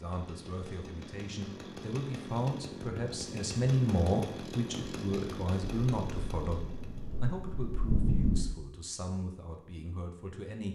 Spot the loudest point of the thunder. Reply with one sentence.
The loudest moment of the thunder is at 8 seconds.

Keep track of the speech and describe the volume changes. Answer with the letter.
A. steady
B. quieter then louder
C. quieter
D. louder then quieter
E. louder
D.